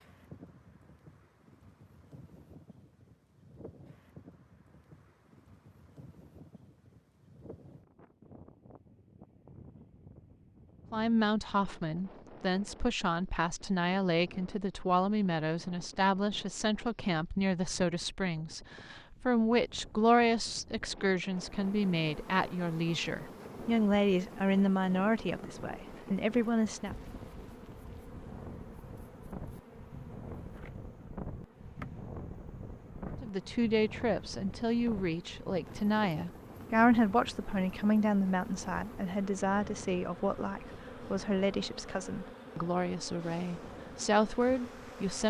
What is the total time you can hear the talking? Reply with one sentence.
The talking can be heard for 28 seconds in total.